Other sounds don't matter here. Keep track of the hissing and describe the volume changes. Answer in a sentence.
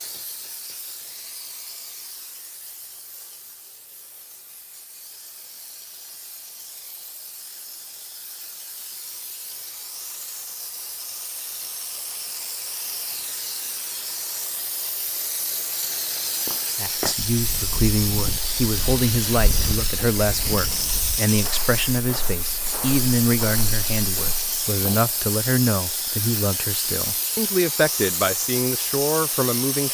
The volume of the hissing goes up.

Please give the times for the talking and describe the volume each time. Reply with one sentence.
The talking can be heard from 16.8 to 29.8 s, at a steady volume.